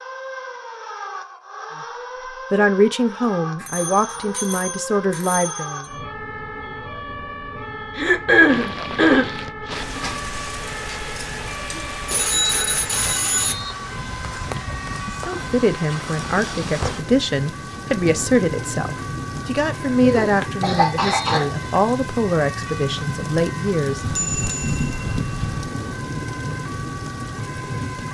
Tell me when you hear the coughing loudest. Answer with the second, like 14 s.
8 s.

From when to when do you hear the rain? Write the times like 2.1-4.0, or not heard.
8.4-28.0.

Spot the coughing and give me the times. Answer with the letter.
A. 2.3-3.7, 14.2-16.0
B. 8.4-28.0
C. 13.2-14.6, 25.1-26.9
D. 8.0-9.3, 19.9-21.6
D.